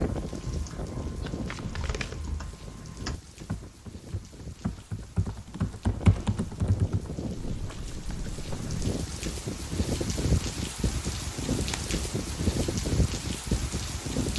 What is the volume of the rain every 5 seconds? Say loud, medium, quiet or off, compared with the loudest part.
medium, medium, loud.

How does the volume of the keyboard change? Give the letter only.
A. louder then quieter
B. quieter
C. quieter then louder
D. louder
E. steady
A.